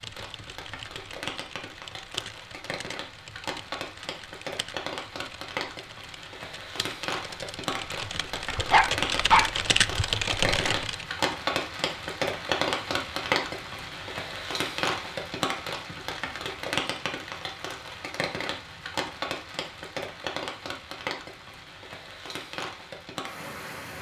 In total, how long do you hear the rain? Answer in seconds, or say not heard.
24 s.